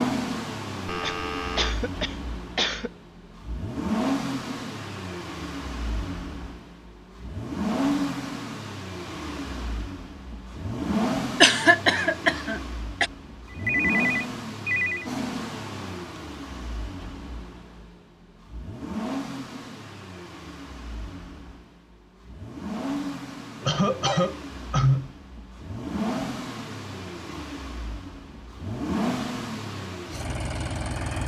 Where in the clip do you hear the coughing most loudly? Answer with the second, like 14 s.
12 s.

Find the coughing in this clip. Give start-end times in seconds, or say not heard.
1.0-2.9, 11.4-13.1, 23.6-25.1.